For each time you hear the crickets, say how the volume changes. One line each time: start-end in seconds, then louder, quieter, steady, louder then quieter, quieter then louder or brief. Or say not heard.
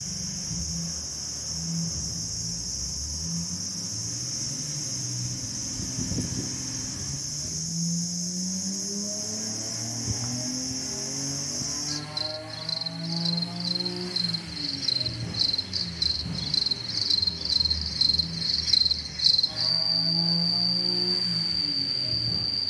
0.0-22.6 louder.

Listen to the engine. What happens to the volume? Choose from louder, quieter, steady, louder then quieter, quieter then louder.
steady.